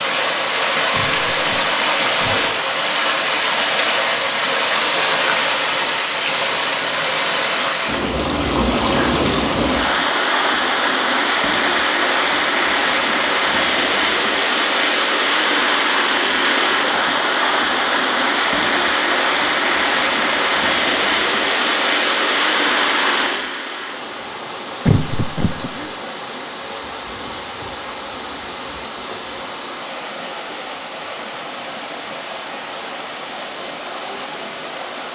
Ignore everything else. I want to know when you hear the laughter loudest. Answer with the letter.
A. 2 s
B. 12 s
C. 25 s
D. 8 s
C.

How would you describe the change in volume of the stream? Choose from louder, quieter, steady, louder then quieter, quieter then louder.
quieter.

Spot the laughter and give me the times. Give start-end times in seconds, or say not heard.
0.9-2.5, 24.9-25.9.